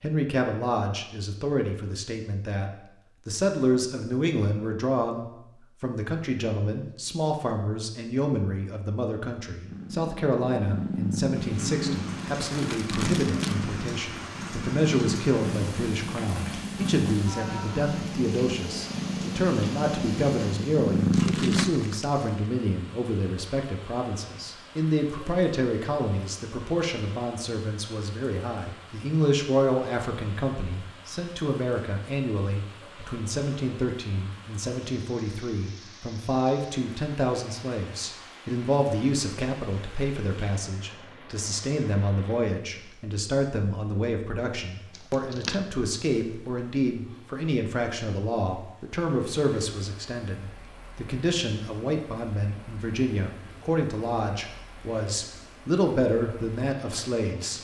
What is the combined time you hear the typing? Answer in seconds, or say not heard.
not heard.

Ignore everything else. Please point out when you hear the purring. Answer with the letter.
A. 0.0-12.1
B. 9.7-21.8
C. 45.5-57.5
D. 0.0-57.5
B.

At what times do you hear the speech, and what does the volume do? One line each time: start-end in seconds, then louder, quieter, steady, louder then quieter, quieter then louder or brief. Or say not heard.
0.0-57.5 steady.